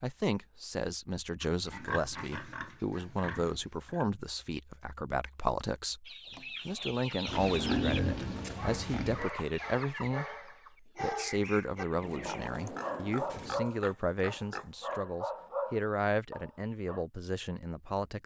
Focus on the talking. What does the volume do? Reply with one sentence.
The loudness of the talking stays about the same.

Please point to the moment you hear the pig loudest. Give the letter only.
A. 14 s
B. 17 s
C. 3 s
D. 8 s
D.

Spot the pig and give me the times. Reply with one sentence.
The pig can be heard from 1.4 to 4.0 s, from 7.2 to 9.3 s and from 12.2 to 14.9 s.